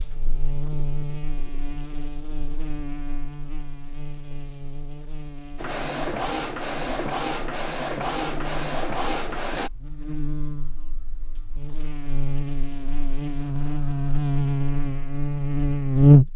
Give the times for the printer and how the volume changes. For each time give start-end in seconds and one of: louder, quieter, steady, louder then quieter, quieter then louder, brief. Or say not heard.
5.5-9.7 steady.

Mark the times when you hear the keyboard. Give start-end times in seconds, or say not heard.
not heard.